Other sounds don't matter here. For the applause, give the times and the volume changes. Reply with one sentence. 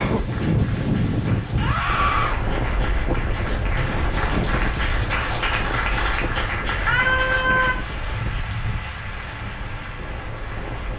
The applause can be heard from 0.0 to 10.9 s, getting louder then quieter.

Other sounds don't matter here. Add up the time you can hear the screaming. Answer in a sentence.
You can hear the screaming for 2 seconds altogether.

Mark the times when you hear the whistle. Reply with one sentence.
You can't hear the whistle here.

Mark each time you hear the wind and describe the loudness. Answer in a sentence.
The wind can be heard from 0.0 to 10.9 s, getting quieter.